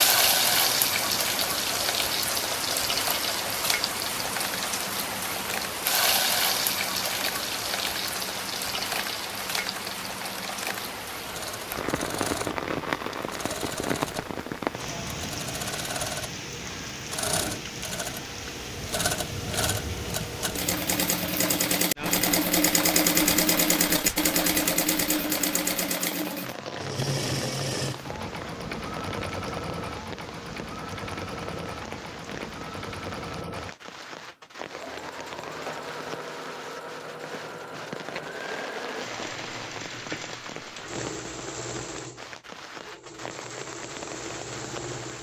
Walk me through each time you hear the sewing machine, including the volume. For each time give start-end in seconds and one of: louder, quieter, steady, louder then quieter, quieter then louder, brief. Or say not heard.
0.0-45.1 louder then quieter.